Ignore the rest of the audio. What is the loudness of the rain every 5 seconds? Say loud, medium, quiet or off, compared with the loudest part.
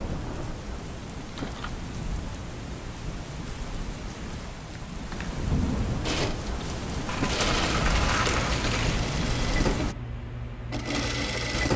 medium, loud, off.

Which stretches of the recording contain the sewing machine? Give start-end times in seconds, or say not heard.
6.0-11.7.